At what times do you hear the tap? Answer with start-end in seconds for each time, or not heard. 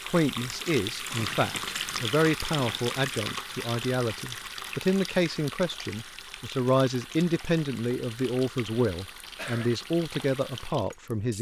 0.0-11.3.